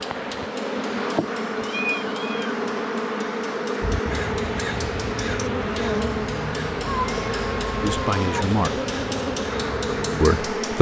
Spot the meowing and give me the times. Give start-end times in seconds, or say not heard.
1.6-2.5, 6.8-8.4.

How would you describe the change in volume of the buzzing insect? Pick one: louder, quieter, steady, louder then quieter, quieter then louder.
steady.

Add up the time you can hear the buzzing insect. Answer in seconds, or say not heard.
11 s.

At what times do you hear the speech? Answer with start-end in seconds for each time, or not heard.
7.8-8.7, 10.2-10.7.